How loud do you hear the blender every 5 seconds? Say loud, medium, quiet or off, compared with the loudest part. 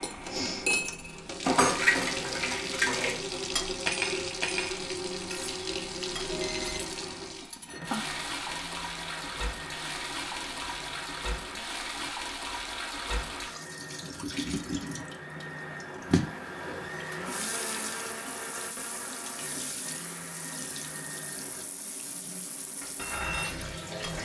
medium, medium, medium, loud, medium.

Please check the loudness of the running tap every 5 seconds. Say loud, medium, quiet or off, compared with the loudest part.
loud, loud, loud, loud, medium.